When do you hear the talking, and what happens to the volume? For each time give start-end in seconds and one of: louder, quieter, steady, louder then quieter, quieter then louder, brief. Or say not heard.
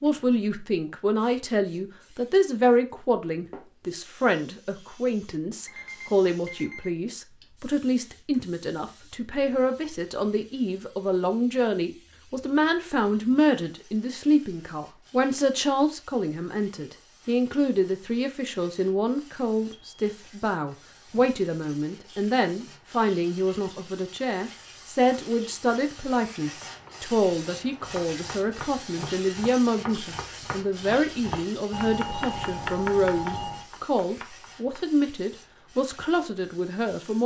0.0-37.2 steady.